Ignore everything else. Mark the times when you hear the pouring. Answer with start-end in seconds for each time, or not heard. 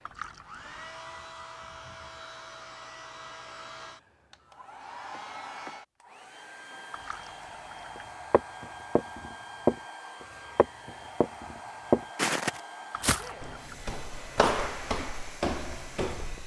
0.1-1.0, 6.9-8.1, 12.9-13.9.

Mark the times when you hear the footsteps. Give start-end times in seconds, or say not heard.
8.0-16.4.